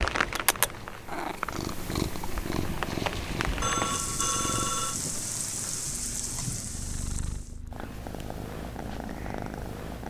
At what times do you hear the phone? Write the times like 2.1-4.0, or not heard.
3.6-5.0.